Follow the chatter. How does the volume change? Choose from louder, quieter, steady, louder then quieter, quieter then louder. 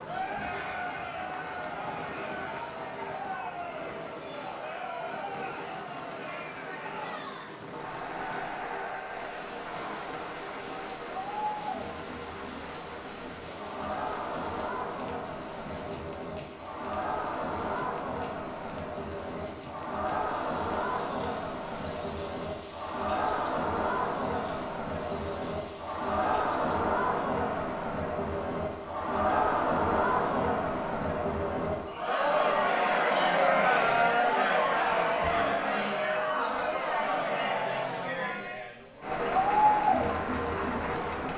louder.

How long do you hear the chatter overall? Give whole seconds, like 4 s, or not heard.
41 s.